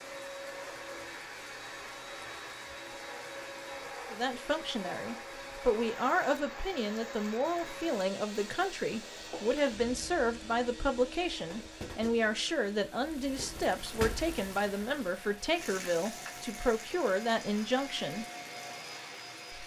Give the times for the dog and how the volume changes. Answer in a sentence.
The dog can't be heard in this clip.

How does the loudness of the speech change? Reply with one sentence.
The volume of the speech stays about the same.